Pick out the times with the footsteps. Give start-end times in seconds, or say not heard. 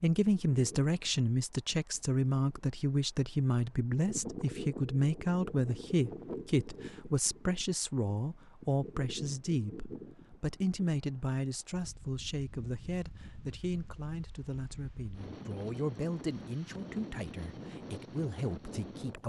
not heard.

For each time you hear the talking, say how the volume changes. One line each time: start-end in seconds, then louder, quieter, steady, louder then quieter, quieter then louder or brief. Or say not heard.
0.0-19.2 quieter.